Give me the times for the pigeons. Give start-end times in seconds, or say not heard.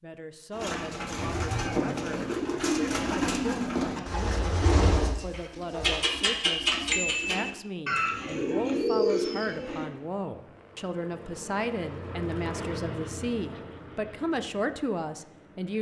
0.5-9.8.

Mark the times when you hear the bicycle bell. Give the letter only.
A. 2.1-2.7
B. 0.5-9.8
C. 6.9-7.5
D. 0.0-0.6
C.